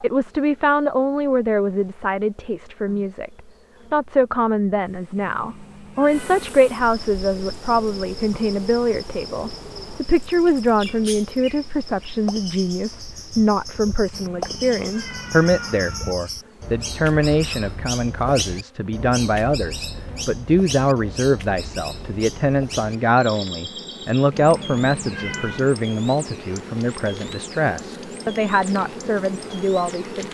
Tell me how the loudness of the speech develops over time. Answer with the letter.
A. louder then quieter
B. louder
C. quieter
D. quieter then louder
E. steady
E.